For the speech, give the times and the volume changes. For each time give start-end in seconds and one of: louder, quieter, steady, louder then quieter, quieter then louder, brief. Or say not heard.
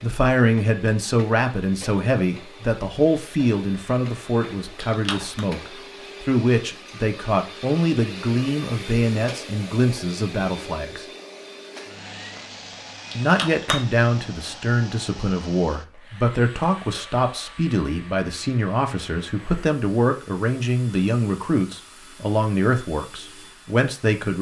0.0-11.1 steady
13.2-24.3 steady.